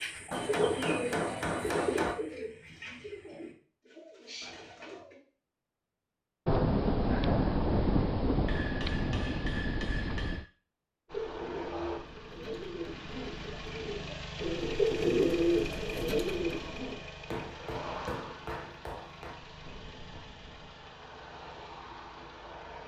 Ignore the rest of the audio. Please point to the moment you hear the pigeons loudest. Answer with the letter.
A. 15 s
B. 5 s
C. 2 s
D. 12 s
A.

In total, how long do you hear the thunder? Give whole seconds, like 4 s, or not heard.
4 s.